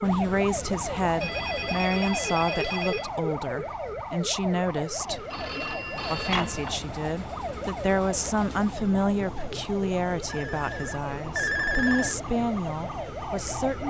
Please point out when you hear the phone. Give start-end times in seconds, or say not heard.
1.1-3.1, 5.0-6.8, 10.2-12.2.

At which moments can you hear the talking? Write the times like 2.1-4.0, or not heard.
0.0-5.2, 6.1-13.8.